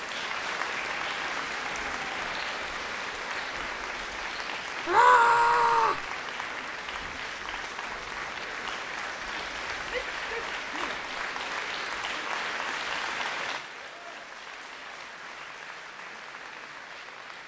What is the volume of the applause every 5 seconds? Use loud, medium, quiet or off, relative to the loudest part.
loud, loud, loud, medium.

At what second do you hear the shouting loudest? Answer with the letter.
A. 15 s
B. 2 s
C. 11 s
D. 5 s
D.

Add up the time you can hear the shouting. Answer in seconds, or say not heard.
2 s.